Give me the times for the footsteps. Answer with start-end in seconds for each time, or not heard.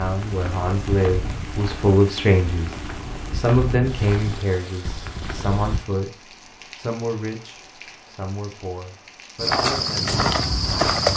0.0-5.8, 9.3-11.1.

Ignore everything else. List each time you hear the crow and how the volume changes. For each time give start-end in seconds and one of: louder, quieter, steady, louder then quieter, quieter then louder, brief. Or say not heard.
not heard.